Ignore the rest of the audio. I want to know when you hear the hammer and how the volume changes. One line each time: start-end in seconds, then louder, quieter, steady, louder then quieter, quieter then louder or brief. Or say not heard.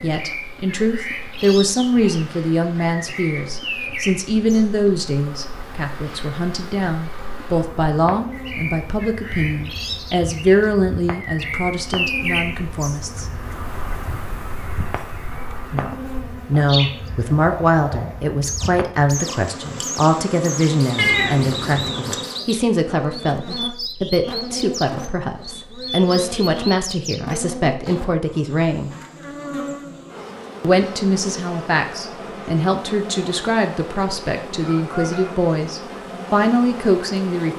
not heard.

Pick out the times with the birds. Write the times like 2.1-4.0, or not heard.
0.0-28.0.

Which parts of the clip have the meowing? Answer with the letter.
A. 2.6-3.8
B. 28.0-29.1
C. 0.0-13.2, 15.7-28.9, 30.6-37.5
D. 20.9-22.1
D.